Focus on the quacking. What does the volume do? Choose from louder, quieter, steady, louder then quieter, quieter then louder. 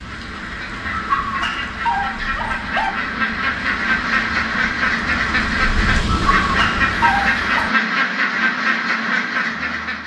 louder.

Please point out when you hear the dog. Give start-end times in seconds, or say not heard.
0.9-2.9, 6.1-7.7.